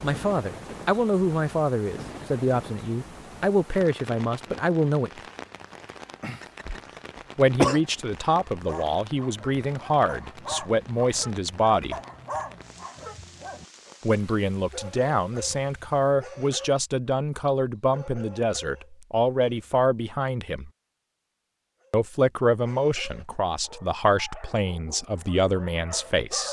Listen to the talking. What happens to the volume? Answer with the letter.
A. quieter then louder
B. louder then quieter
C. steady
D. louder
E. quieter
C.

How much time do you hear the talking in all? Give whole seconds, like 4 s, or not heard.
21 s.